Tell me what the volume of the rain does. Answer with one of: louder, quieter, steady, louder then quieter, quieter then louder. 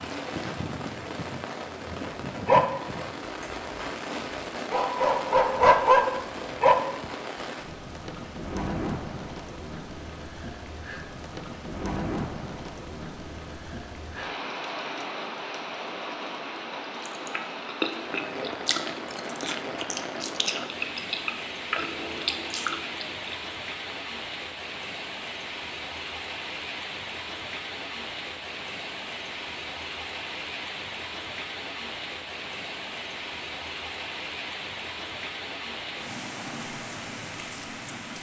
steady.